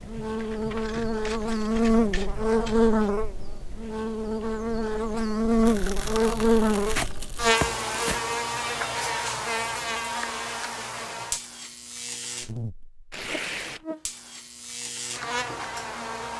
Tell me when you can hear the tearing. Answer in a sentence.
The tearing can be heard from 0.1 to 1.1 s, from 5.7 to 8.2 s and from 13.1 to 13.8 s.